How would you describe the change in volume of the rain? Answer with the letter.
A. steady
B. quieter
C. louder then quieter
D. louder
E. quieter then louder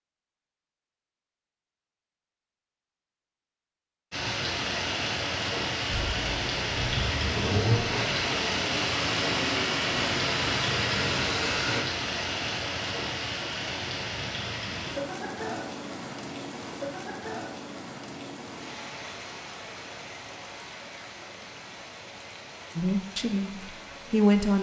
B.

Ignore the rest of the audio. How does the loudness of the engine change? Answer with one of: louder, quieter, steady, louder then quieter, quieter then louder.
louder.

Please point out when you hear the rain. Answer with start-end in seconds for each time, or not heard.
4.1-24.5.